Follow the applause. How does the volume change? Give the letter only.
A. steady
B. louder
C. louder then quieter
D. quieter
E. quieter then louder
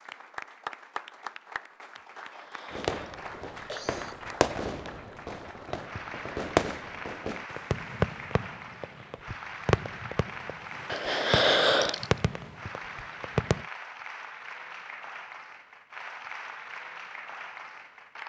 A.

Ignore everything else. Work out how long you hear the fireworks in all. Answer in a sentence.
The fireworks can be heard for 11 seconds in total.